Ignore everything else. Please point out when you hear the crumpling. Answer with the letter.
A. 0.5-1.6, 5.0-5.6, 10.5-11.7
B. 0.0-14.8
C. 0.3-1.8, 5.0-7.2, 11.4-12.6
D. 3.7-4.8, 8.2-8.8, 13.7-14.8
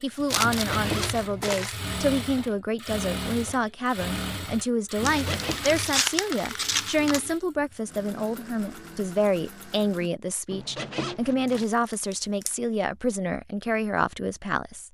C.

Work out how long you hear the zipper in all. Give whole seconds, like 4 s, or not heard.
3 s.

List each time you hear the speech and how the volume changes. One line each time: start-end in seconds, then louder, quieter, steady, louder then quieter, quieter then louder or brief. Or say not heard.
0.0-14.8 steady.